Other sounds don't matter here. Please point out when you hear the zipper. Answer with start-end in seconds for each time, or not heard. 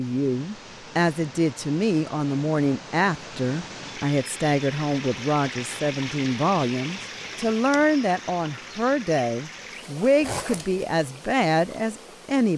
10.2-10.8.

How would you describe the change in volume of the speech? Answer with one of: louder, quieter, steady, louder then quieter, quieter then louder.
steady.